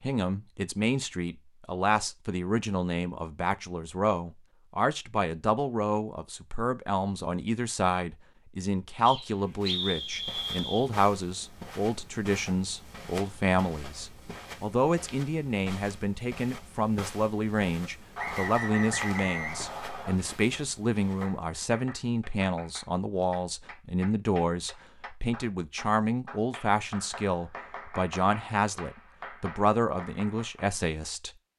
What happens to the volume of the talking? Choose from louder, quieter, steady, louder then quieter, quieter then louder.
steady.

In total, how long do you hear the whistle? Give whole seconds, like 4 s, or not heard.
4 s.